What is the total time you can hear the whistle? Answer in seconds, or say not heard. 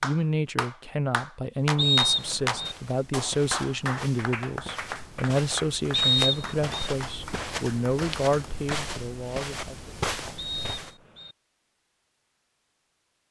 3 s.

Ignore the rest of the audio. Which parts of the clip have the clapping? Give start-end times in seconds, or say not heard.
0.0-8.9.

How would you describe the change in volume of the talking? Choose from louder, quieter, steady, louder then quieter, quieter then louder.
steady.